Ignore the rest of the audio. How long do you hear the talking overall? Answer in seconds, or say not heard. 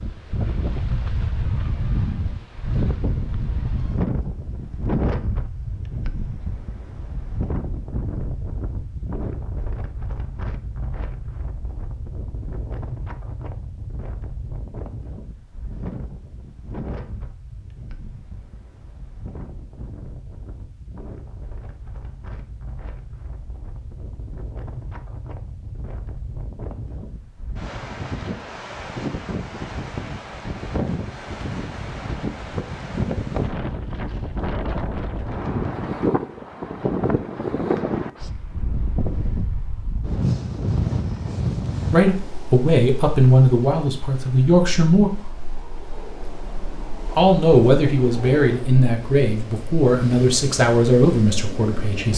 8 s.